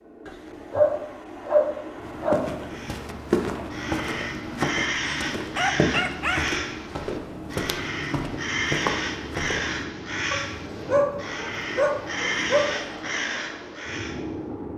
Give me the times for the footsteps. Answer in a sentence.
You can hear the footsteps from 2.0 to 9.8 s.